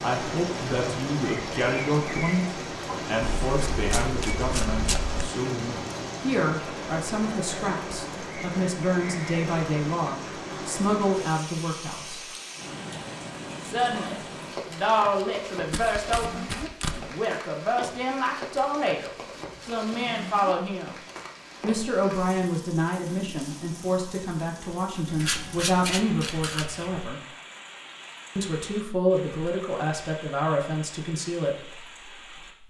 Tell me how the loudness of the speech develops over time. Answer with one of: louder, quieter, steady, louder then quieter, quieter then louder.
steady.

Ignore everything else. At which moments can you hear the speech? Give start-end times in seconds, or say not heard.
0.0-12.2, 13.6-20.9, 21.6-27.2, 28.4-31.8.